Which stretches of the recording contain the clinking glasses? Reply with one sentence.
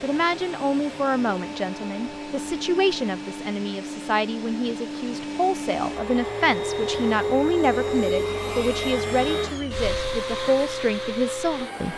The clinking glasses can't be heard in this clip.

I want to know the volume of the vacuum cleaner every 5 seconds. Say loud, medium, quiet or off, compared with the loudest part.
medium, loud, loud.